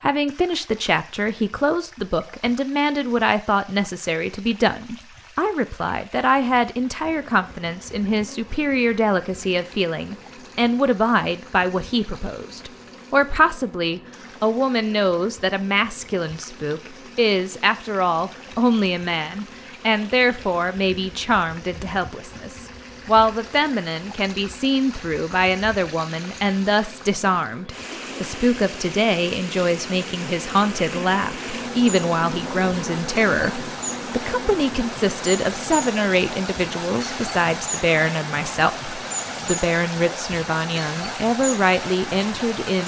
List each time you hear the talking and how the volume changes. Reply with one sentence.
You can hear the talking from 0.0 to 42.8 s, at a steady volume.